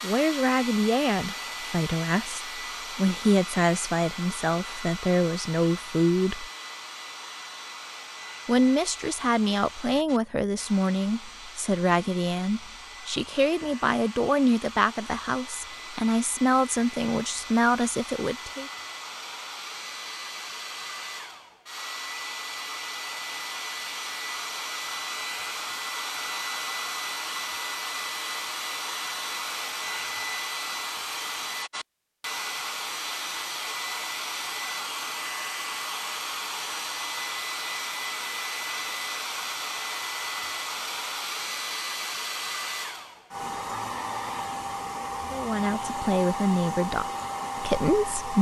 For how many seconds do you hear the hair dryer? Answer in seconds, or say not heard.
48 s.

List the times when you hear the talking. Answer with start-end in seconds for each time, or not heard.
0.0-6.5, 8.4-18.7, 45.3-48.3.